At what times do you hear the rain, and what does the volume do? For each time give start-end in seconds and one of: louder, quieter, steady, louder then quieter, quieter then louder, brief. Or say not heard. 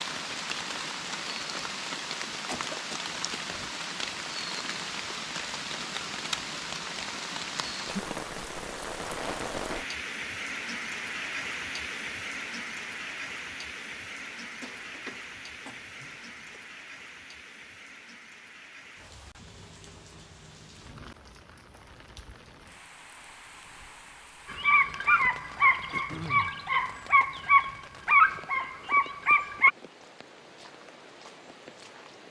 0.0-32.2 quieter.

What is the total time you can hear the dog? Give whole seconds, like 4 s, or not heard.
5 s.